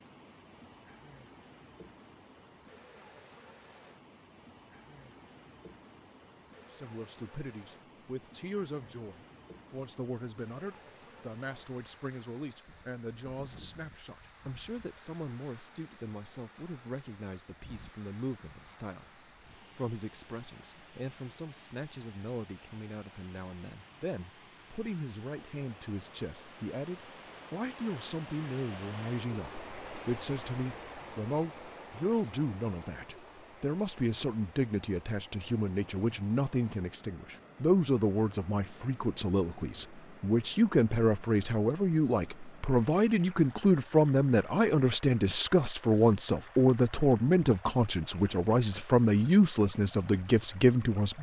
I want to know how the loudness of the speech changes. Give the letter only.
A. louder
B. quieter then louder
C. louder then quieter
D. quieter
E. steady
A.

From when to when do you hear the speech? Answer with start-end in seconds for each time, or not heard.
6.7-51.1.